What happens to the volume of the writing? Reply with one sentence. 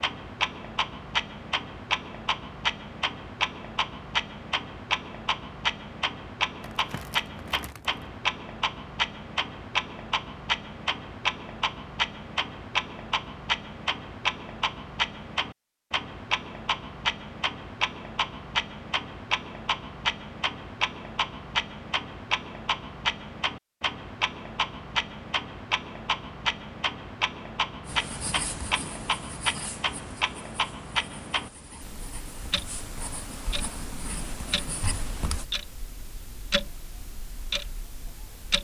The loudness of the writing goes down, then up.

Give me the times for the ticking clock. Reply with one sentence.
You can hear the ticking clock from 0.0 to 38.5 s.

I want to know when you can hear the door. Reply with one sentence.
The door can be heard from 34.8 to 35.5 s.